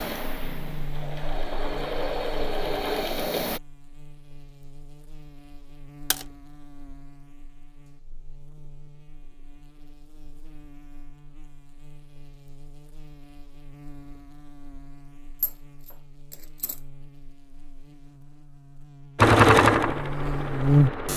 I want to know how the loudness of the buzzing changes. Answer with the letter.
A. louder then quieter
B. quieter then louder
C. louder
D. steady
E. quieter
B.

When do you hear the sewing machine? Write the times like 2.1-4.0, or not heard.
0.0-3.6, 19.1-21.1.